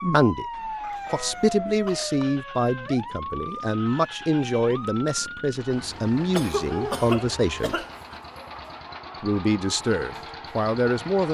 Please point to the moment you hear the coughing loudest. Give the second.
7 s.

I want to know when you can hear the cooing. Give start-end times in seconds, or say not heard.
not heard.